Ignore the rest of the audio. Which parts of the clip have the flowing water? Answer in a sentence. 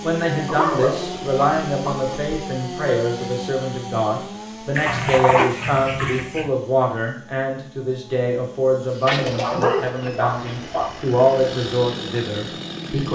The flowing water can't be heard in this clip.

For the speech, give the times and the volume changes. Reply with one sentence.
The speech can be heard from 0.0 to 13.1 s, at a steady volume.